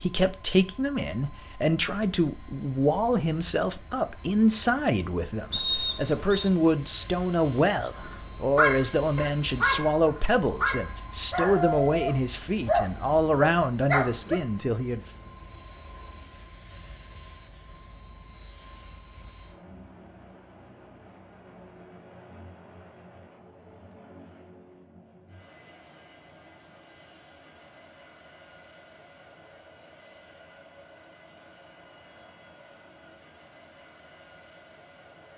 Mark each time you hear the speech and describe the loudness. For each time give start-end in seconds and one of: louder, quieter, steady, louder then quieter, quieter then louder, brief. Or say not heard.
0.0-15.1 steady.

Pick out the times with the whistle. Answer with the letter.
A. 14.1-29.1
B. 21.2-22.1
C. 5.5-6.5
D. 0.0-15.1
C.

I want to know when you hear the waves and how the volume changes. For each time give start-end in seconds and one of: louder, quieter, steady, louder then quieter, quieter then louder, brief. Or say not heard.
not heard.